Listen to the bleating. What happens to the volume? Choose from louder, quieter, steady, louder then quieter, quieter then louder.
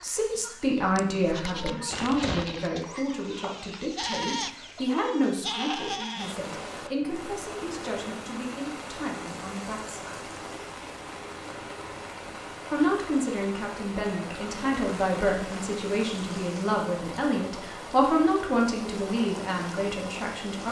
quieter then louder.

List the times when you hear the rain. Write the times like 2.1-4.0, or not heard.
6.2-20.6.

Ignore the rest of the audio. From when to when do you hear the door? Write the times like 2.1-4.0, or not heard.
not heard.